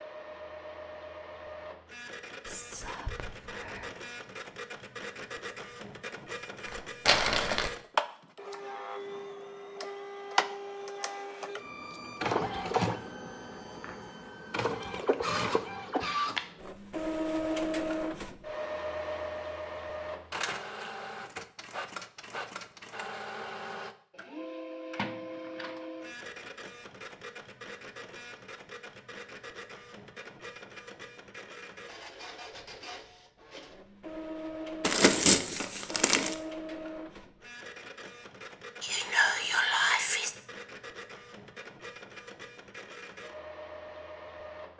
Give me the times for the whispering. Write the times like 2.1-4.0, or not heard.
2.5-3.9, 38.8-40.4.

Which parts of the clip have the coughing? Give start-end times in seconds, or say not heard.
not heard.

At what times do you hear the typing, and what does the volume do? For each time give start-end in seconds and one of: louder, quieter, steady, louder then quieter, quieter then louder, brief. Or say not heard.
not heard.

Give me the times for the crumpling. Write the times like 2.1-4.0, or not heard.
6.7-7.7, 34.8-36.4.